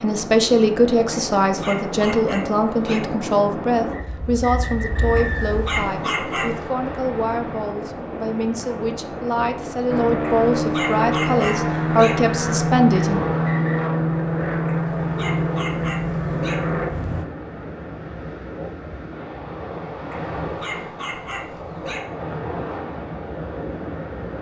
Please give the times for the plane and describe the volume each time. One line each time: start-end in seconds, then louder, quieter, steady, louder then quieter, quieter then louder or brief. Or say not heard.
9.8-17.2 steady.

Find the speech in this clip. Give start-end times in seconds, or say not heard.
0.0-13.2.